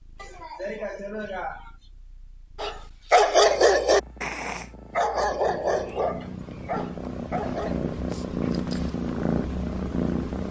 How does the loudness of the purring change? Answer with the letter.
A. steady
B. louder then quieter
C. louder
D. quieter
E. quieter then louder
C.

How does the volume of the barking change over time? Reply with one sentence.
The volume of the barking goes down.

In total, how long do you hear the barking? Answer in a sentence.
The barking can be heard for 5 seconds in total.